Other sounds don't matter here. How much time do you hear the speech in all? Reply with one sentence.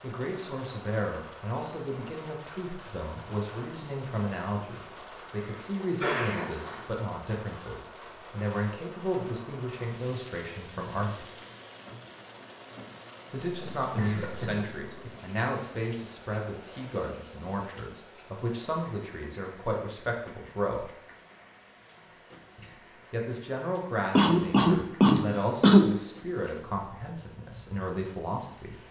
You can hear the speech for 25 seconds altogether.